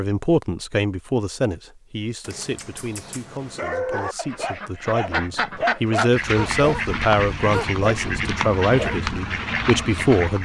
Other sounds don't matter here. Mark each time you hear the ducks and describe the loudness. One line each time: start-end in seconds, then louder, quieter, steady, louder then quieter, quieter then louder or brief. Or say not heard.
4.2-10.3 steady.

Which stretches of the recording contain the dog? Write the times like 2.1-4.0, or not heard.
2.2-9.3.